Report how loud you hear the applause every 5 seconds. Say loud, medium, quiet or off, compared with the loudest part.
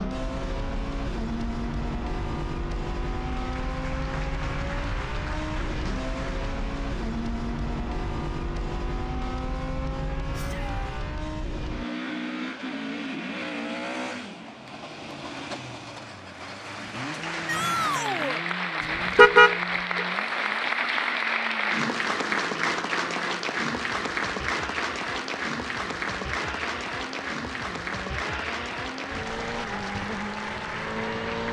quiet, quiet, off, loud, loud, medium, medium.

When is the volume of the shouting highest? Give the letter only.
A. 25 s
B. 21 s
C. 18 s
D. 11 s
C.